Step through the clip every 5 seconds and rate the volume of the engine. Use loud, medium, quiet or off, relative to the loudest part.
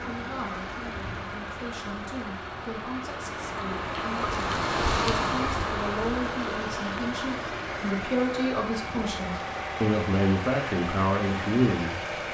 medium, loud, loud.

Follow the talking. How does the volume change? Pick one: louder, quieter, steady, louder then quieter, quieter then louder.
louder.